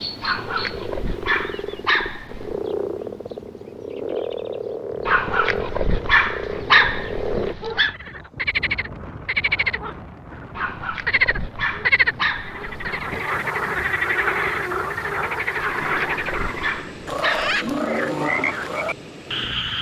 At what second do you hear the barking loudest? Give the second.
7 s.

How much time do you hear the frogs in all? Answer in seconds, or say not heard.
20 s.